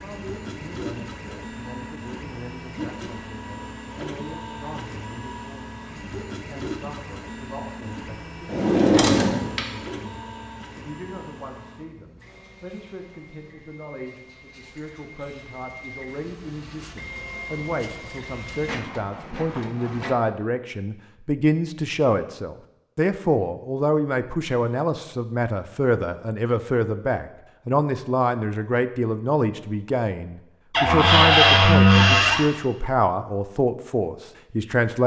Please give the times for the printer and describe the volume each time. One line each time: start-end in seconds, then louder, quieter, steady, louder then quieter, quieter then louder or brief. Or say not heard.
0.0-20.1 quieter then louder.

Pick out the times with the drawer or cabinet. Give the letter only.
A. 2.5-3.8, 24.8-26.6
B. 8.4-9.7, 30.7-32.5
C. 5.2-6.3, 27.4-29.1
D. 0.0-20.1
B.